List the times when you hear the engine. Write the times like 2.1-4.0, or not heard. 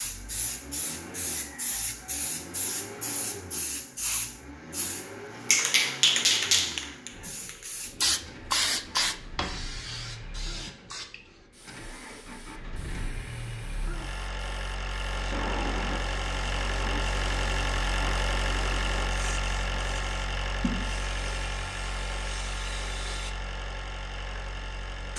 0.0-25.1.